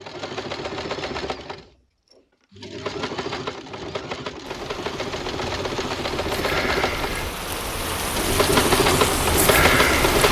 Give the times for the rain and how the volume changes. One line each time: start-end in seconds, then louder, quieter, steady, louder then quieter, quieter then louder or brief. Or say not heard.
4.5-10.2 louder.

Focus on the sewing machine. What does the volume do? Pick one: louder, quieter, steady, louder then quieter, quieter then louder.
louder.